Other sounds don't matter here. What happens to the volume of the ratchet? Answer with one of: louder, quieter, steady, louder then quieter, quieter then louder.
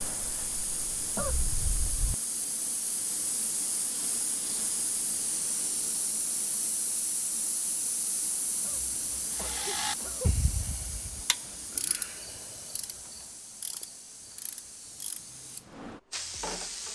quieter.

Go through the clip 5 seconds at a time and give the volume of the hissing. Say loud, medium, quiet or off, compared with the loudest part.
loud, loud, medium, loud.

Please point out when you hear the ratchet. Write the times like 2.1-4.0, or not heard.
9.3-16.9.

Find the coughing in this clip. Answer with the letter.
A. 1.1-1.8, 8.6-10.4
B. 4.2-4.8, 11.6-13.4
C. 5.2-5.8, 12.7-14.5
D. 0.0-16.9
A.